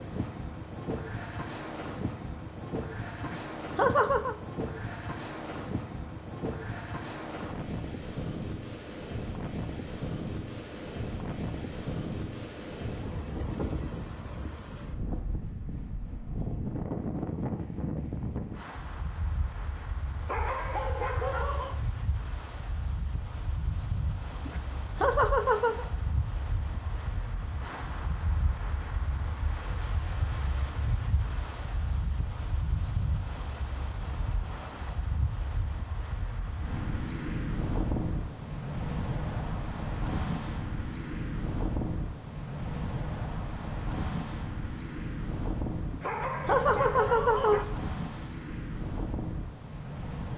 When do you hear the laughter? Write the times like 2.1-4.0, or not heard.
3.2-4.3, 24.4-25.9, 45.9-47.6.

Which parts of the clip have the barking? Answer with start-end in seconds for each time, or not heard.
20.2-21.8, 46.0-47.6.